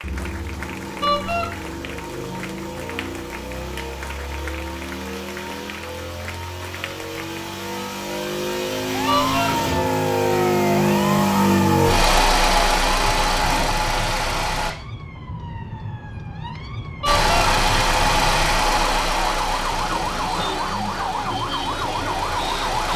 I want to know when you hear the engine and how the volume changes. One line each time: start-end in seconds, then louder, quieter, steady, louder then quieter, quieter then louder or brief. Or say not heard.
0.0-14.8 louder
17.1-22.9 quieter.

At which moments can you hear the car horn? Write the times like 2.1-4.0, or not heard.
1.0-1.5, 9.1-9.6, 17.0-17.5.